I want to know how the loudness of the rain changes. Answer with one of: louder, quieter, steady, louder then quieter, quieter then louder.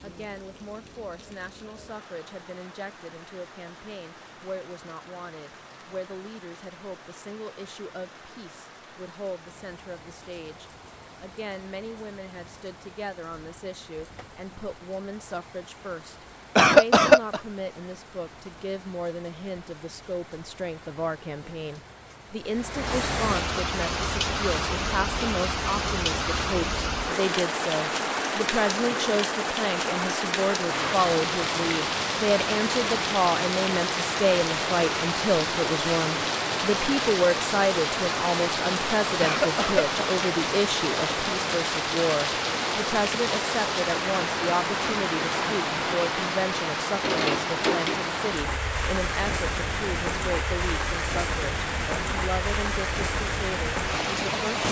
louder.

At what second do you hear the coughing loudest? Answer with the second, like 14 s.
17 s.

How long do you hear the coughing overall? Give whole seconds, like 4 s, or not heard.
2 s.